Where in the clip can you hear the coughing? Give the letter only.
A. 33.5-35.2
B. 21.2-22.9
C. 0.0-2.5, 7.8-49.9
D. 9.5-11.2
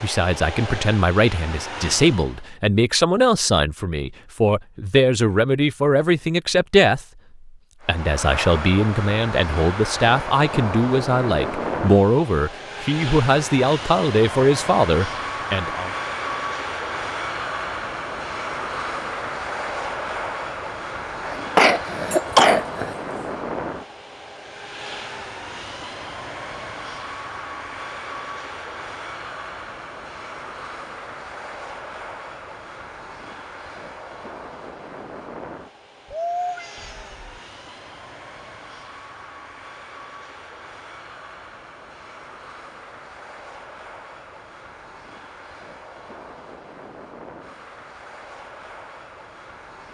B.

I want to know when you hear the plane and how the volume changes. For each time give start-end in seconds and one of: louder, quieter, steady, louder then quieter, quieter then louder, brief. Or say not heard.
0.0-2.5 brief
7.8-49.9 quieter.